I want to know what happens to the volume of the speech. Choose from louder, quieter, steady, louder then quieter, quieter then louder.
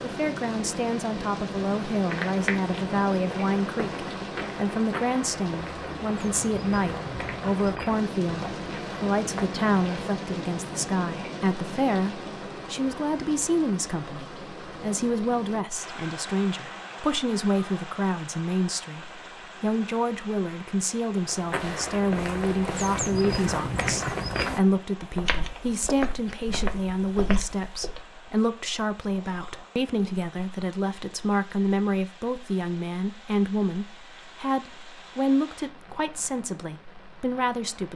steady.